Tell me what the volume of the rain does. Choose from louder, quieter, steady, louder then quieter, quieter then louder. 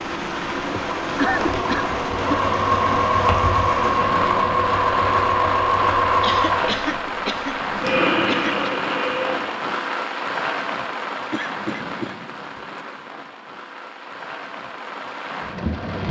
quieter.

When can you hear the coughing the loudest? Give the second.
1 s.